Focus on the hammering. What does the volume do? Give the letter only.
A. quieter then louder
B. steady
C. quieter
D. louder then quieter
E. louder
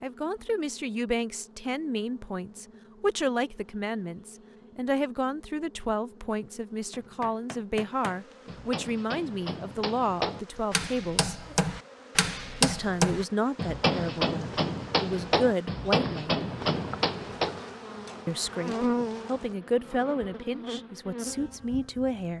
E.